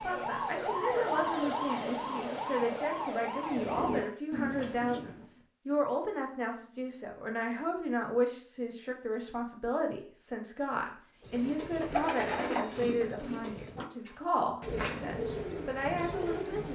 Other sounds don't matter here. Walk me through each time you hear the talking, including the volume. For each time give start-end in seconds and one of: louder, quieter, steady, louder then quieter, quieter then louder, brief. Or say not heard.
0.0-16.7 steady.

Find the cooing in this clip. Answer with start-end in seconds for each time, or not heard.
3.4-5.3, 11.7-16.7.